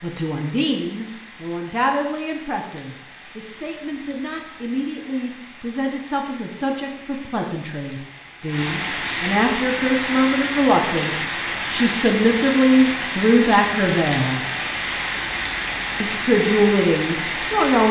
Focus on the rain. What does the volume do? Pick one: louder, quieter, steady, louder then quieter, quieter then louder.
louder.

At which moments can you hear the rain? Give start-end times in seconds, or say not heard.
0.0-17.8.